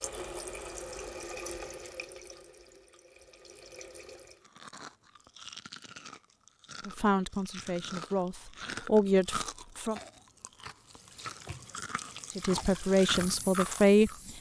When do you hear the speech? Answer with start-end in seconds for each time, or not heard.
6.8-10.0, 12.3-14.3.